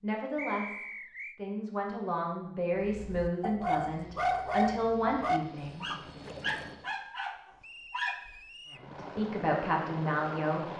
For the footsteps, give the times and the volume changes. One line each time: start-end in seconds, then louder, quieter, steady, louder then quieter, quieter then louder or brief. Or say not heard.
not heard.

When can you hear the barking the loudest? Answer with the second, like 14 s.
4 s.